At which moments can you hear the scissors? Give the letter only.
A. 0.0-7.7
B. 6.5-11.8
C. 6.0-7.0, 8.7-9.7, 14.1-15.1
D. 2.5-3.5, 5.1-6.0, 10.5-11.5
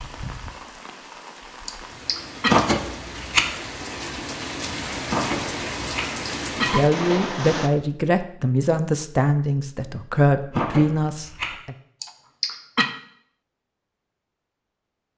D.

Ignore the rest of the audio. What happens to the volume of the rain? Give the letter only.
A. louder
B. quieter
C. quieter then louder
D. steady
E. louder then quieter
A.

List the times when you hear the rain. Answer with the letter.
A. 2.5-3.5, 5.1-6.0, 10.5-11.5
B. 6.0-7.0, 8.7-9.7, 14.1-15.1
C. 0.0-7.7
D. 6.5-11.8
C.